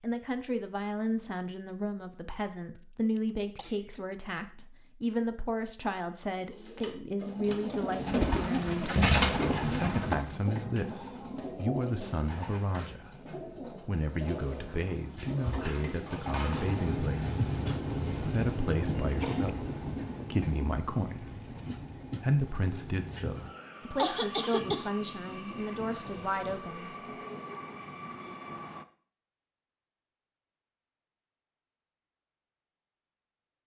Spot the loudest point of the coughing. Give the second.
24 s.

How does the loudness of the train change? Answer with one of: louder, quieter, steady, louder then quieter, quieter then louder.
quieter.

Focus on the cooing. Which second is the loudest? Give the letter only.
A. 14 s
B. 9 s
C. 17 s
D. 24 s
B.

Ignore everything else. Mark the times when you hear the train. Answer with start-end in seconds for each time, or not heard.
16.5-28.9.